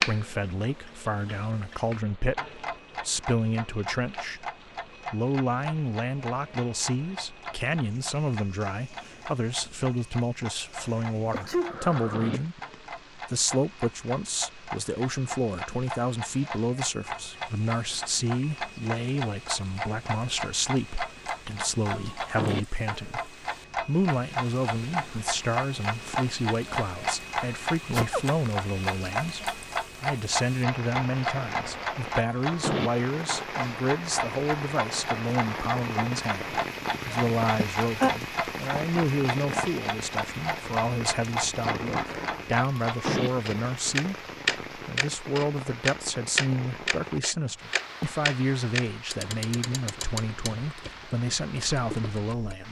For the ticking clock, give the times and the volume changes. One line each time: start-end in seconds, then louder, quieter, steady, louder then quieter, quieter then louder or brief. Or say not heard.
0.0-52.5 louder.